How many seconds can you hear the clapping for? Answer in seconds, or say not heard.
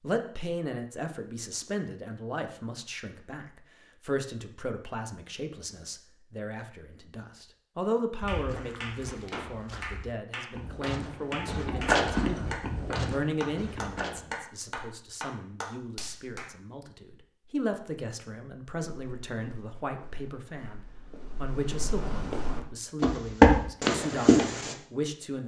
8 s.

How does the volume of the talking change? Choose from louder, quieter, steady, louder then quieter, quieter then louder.
steady.